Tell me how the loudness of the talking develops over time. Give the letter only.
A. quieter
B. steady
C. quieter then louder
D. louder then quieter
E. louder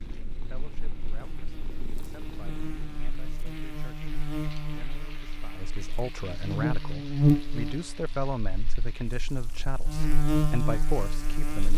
E.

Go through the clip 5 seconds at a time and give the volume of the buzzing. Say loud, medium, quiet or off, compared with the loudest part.
medium, loud, loud.